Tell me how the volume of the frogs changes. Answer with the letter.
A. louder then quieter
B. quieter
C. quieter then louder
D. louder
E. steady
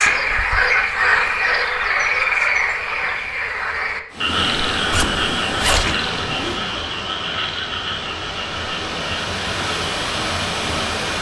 B.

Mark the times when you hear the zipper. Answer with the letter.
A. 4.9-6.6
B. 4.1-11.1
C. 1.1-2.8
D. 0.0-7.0
A.